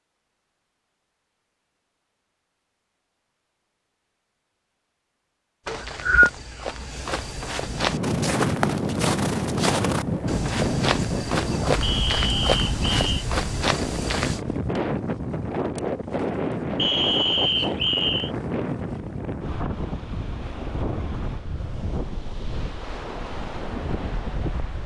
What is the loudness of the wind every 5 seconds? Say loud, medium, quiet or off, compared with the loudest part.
off, loud, loud, loud, medium.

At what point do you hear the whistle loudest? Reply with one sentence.
The loudest moment of the whistle is at 6 seconds.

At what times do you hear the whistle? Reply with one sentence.
You can hear the whistle from 5.7 to 6.3 s, from 11.8 to 13.2 s and from 16.8 to 18.3 s.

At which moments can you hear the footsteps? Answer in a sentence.
You can hear the footsteps from 5.7 to 14.4 s.